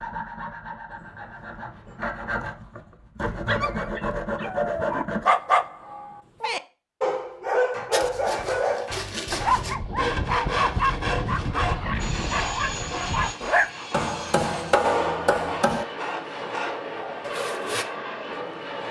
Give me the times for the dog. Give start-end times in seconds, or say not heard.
3.5-13.7.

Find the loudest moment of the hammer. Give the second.
15 s.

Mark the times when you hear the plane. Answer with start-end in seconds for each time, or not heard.
11.9-18.8.